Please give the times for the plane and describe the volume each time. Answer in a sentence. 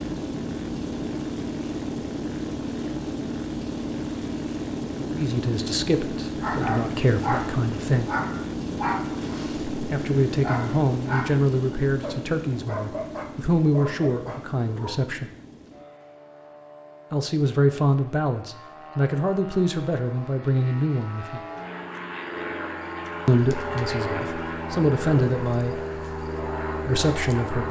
The plane can be heard from 0.0 to 27.6 s, getting quieter then louder.